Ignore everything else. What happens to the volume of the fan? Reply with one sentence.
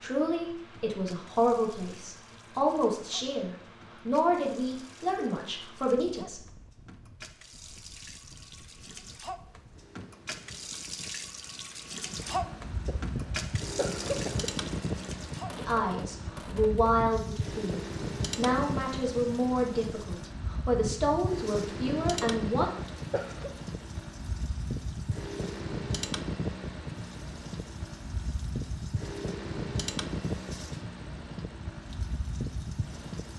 The volume of the fan goes up.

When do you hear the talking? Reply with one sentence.
The talking can be heard from 0.0 to 6.4 s and from 15.6 to 22.7 s.